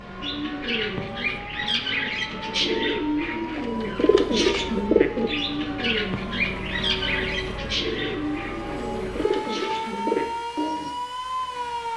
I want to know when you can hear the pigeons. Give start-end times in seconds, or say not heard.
0.2-10.9.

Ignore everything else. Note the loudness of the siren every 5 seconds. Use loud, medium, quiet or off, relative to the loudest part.
medium, medium, loud.